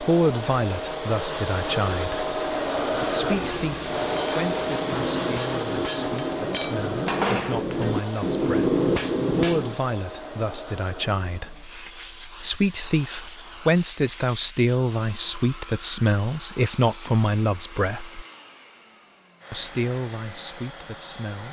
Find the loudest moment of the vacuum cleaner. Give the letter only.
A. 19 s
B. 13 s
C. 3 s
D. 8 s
C.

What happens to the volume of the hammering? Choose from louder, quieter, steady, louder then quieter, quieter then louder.
louder.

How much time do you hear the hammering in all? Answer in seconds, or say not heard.
7 s.